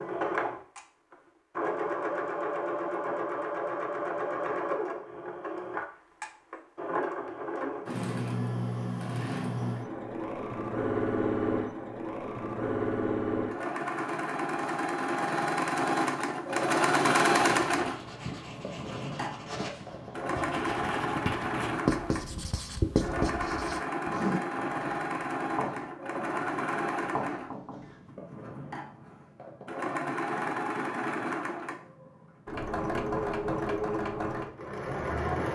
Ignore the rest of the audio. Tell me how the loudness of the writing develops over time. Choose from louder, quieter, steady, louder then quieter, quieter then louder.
louder then quieter.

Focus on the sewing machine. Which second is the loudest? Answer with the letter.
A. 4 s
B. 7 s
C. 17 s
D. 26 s
C.